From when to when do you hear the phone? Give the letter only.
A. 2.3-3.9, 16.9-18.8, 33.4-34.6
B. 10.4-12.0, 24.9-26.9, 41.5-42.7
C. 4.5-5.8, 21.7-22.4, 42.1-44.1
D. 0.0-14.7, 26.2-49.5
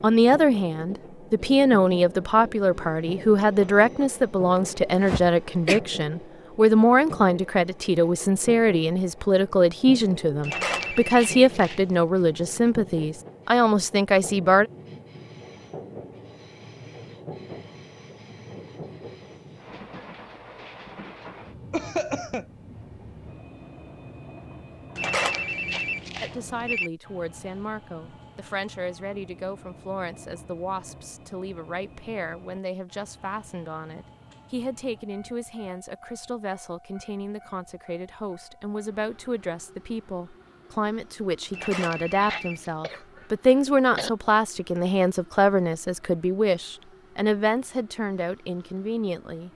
B.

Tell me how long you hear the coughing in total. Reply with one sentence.
The coughing can be heard for 4 seconds in total.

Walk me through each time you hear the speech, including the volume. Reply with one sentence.
The speech can be heard from 0.0 to 14.7 s, at a steady volume; and from 26.2 to 49.5 s, getting louder.